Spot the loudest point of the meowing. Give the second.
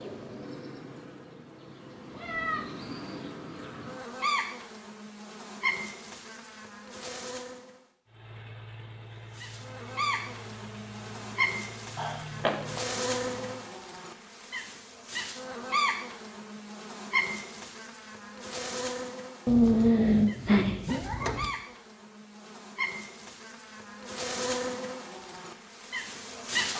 20 s.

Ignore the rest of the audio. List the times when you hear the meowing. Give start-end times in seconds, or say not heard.
2.1-2.7, 11.9-12.8, 19.4-21.5.